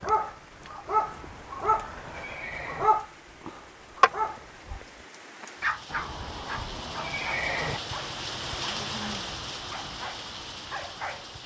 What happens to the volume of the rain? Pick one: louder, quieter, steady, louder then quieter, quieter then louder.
louder.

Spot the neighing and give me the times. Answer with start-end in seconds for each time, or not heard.
1.0-2.9, 5.9-7.8.